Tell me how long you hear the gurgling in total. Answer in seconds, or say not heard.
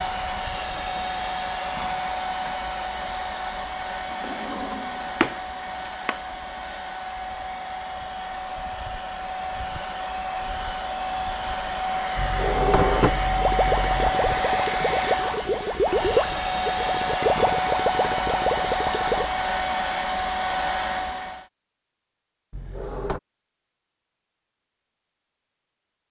6 s.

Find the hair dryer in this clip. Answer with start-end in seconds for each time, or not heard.
0.0-21.4.